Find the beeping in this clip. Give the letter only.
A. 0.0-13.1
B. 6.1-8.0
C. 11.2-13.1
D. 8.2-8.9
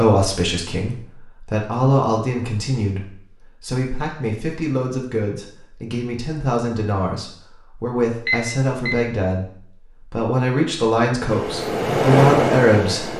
D.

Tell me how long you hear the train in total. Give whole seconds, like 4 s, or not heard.
2 s.